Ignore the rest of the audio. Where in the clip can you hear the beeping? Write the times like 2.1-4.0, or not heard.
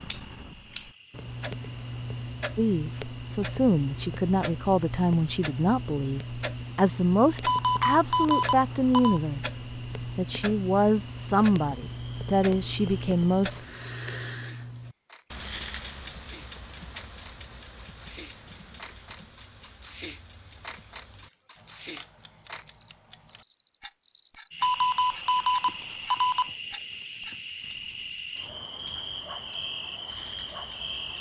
7.5-9.2, 24.6-26.5.